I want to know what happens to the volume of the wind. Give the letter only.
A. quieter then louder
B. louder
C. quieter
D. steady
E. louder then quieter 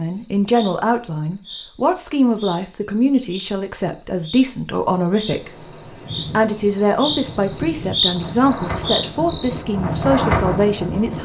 B.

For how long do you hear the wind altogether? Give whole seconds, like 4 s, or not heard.
6 s.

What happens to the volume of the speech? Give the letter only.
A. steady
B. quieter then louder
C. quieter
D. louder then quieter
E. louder
A.